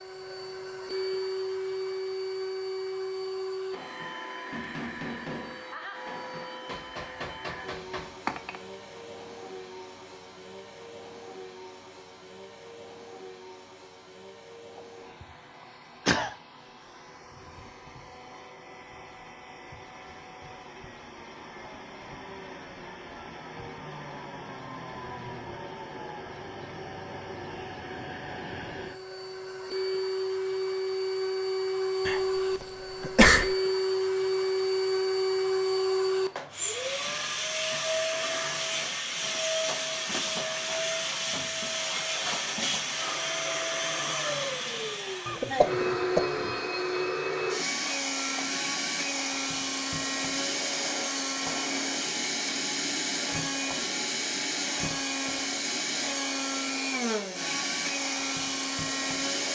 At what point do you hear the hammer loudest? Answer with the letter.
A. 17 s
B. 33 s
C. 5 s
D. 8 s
D.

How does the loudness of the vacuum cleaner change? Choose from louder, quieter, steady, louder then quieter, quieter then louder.
quieter then louder.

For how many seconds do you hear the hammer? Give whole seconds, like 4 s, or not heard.
5 s.